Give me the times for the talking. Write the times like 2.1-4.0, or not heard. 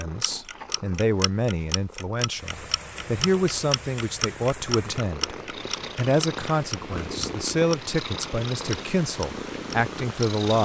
0.0-5.3, 6.0-10.6.